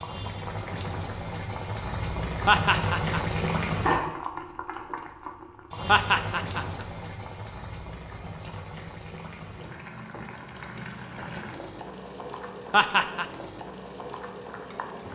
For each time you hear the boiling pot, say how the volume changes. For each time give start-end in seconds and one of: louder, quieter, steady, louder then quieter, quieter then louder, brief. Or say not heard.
0.0-15.1 quieter.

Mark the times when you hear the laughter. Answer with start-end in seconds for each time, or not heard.
2.5-3.2, 5.8-6.7, 12.7-13.2.